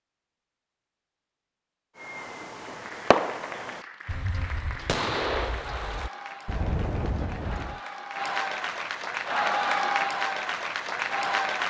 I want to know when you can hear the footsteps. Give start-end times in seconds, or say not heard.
not heard.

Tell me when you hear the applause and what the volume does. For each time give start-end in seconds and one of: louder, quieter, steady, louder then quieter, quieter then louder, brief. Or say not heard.
2.5-11.6 louder.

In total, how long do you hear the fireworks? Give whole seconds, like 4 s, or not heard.
6 s.